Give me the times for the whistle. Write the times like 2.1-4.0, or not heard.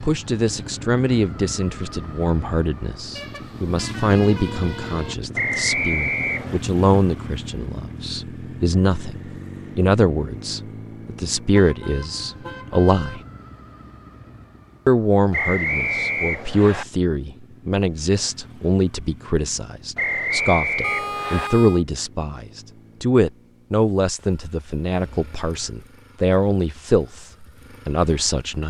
5.3-6.6, 15.3-16.9, 19.9-21.5.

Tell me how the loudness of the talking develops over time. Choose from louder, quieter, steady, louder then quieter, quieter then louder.
steady.